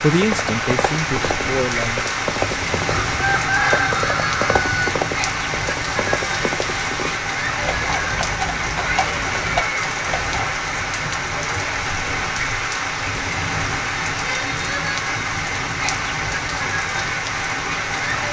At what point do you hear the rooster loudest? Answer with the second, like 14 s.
4 s.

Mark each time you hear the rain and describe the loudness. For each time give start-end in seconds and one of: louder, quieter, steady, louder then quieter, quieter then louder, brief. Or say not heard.
0.0-18.2 steady.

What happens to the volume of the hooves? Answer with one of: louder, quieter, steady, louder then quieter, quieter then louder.
steady.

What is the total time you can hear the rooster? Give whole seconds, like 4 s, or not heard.
2 s.